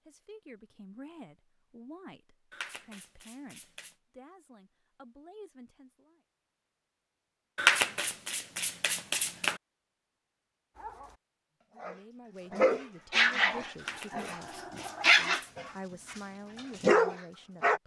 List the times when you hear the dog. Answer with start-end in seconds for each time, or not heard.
10.8-17.8.